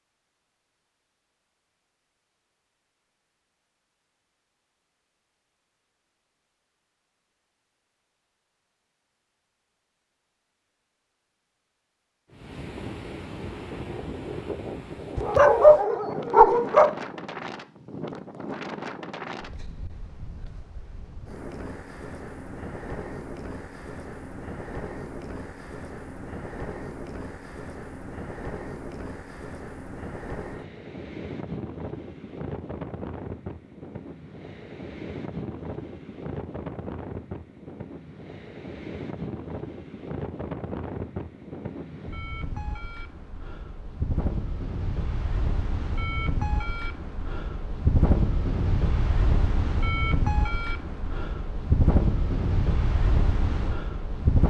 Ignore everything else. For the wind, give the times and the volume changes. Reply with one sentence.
You can hear the wind from 12.3 to 54.4 s, getting louder.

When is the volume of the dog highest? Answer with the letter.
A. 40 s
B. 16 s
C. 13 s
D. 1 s
B.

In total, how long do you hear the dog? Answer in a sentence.
The dog can be heard for 2 seconds in total.